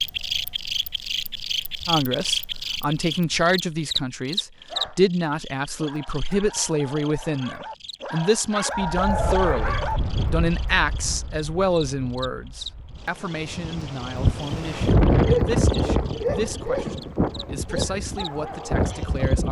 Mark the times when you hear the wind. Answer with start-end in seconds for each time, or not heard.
8.8-19.4.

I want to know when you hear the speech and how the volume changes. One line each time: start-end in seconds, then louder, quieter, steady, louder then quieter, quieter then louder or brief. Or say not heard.
1.9-19.4 quieter.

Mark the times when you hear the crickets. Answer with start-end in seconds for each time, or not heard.
0.0-19.4.